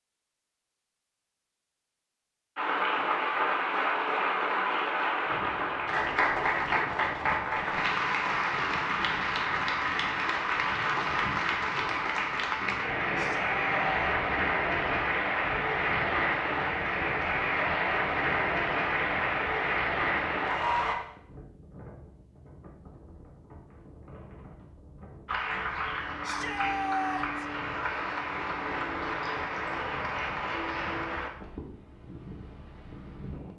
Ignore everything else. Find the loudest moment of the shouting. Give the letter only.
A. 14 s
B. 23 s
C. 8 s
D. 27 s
D.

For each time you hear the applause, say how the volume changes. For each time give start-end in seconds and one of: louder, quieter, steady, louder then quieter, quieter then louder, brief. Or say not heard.
2.5-20.9 steady
25.2-31.3 steady.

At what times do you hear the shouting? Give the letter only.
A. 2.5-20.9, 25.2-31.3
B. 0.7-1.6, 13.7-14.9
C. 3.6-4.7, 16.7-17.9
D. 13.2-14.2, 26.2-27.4
D.